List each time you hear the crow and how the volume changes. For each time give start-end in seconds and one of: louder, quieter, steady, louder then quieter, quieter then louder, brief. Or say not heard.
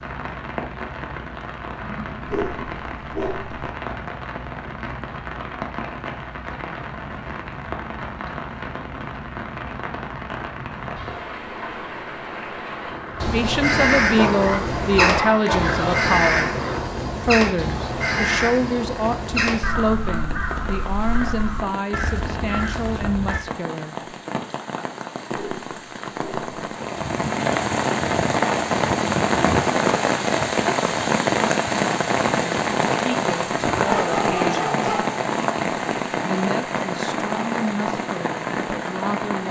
13.2-23.4 quieter.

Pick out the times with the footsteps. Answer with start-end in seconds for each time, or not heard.
not heard.